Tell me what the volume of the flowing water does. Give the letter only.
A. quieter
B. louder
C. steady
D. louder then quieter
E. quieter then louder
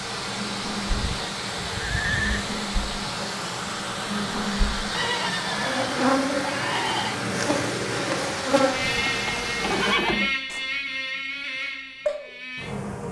C.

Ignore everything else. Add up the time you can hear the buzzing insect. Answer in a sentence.
You can hear the buzzing insect for 13 seconds altogether.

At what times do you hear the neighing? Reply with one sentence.
The neighing can be heard from 0.8 to 2.5 s, from 4.9 to 7.2 s and from 8.9 to 10.3 s.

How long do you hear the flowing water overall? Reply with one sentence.
The flowing water can be heard for 10 seconds in total.